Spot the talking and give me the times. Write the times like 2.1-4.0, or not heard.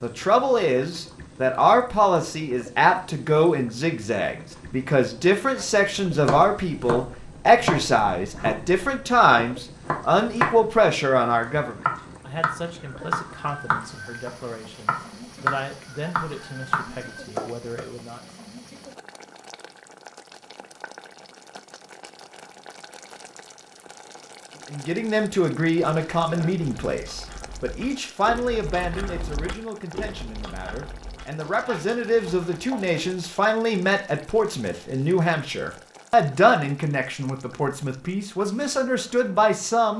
0.0-18.2, 24.7-39.9.